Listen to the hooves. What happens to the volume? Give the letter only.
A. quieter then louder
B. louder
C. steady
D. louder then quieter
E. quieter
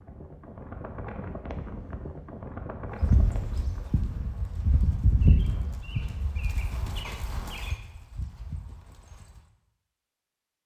D.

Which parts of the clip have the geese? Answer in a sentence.
You can't hear the geese here.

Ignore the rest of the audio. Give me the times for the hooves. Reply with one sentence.
The hooves can be heard from 3.0 to 9.4 s.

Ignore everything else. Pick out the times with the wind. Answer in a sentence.
You can hear the wind from 0.0 to 7.5 s.